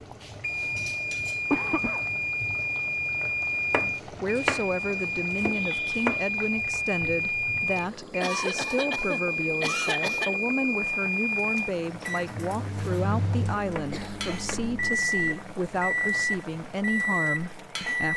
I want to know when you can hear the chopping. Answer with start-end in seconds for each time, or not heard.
3.7-6.2, 13.8-14.7.